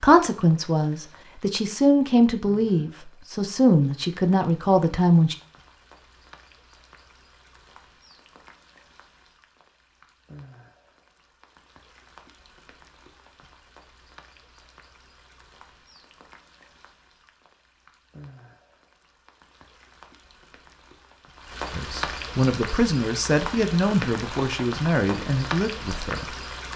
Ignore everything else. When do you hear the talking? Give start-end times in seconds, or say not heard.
0.0-5.3, 21.7-26.4.